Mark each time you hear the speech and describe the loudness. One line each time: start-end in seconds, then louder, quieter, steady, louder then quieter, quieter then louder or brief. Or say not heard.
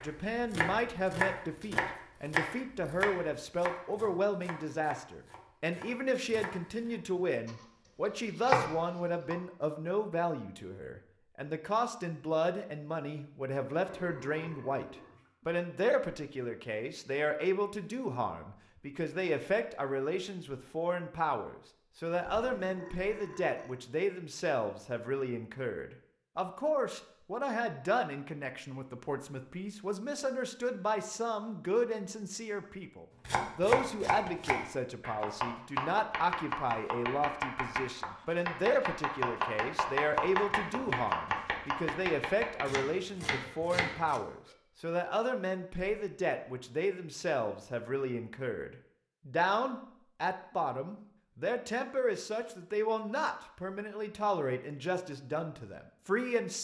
0.0-56.6 steady.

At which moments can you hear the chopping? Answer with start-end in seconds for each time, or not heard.
0.0-7.7, 8.3-9.3, 33.2-44.2.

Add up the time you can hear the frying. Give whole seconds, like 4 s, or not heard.
not heard.